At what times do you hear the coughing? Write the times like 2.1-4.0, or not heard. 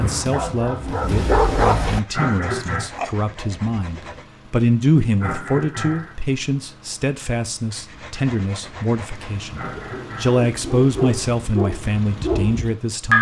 2.1-2.9, 5.2-6.2, 9.6-10.4.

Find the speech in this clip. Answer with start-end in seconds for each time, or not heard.
0.0-13.1.